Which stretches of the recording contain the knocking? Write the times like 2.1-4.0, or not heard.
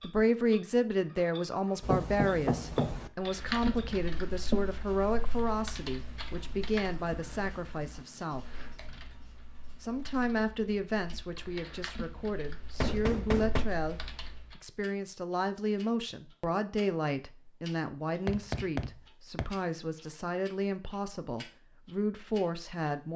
1.8-3.1, 12.8-13.7, 18.2-19.4.